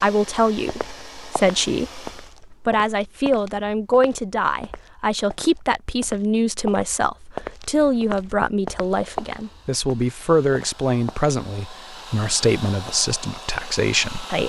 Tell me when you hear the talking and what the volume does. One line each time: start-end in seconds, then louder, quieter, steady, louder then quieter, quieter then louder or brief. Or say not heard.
0.0-14.4 steady.